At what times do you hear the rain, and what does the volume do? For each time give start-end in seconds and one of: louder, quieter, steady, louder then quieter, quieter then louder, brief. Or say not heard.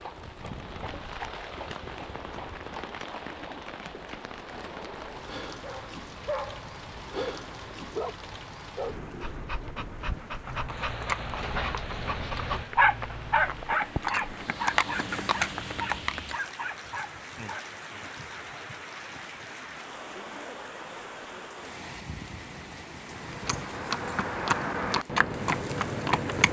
0.0-26.4 steady.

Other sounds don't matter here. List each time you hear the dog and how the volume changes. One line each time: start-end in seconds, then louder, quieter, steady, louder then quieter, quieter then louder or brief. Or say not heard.
5.5-8.2 brief
8.8-17.6 louder then quieter.